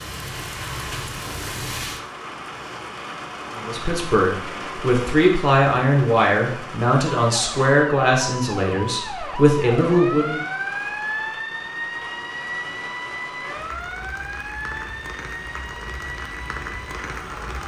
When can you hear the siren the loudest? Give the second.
11 s.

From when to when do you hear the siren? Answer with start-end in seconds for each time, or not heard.
7.2-17.6.